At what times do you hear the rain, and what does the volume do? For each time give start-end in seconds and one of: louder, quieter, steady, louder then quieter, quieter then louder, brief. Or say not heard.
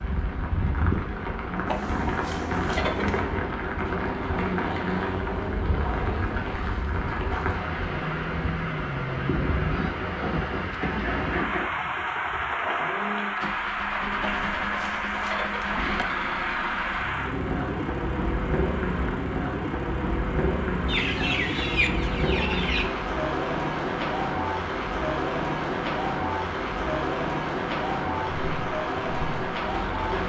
0.0-30.2 steady.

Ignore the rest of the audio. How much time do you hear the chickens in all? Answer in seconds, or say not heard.
5 s.